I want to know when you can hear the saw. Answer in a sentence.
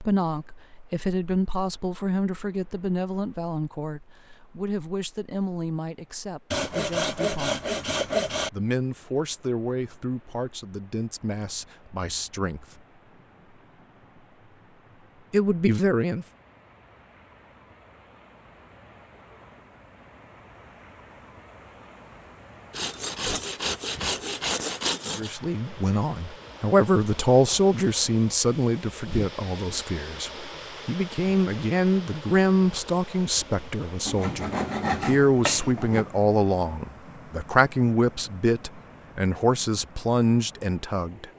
You can hear the saw from 6.5 to 8.5 s, from 22.7 to 25.4 s and from 34.0 to 36.0 s.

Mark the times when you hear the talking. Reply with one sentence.
The talking can be heard from 0.0 to 7.8 s, from 8.5 to 12.7 s, from 15.3 to 16.2 s and from 25.1 to 41.2 s.